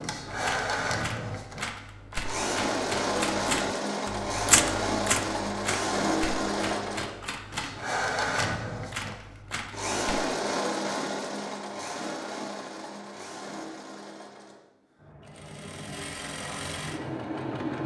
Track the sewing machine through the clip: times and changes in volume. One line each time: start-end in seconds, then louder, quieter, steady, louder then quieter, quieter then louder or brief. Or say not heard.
0.0-17.8 quieter.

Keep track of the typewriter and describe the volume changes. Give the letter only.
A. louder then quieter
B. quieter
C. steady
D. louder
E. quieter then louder
A.